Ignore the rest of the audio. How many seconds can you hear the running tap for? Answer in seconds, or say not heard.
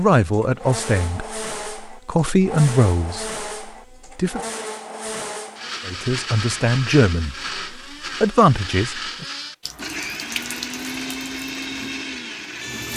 3 s.